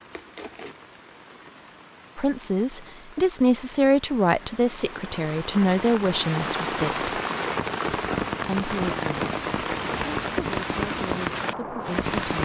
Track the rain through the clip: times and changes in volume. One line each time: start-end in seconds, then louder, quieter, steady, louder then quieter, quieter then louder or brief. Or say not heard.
0.0-12.4 louder.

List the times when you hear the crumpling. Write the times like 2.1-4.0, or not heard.
0.1-0.8.